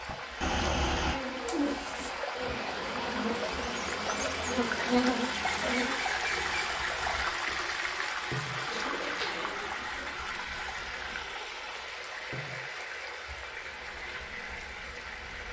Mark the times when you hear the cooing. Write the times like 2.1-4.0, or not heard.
0.4-2.1, 8.6-10.2.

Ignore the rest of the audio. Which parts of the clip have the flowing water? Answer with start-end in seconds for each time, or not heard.
0.0-15.4.